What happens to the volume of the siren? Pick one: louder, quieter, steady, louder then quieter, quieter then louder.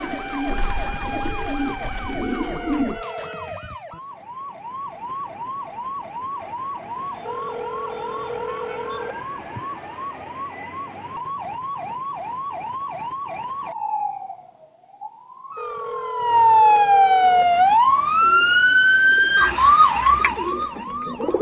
louder.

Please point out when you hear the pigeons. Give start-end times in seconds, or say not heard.
0.0-3.0, 17.2-21.3.